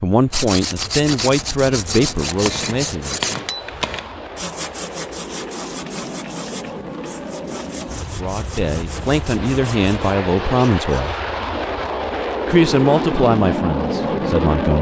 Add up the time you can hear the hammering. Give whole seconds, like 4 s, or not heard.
2 s.